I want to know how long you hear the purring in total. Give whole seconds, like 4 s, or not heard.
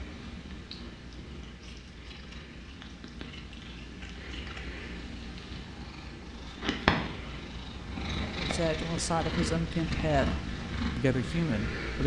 12 s.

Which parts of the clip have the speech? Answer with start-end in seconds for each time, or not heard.
8.3-12.0.